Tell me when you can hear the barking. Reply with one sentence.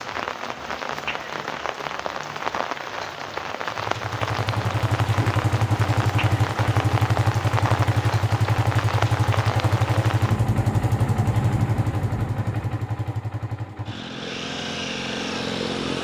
The barking can't be heard in this clip.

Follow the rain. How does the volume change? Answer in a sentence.
The volume of the rain stays about the same.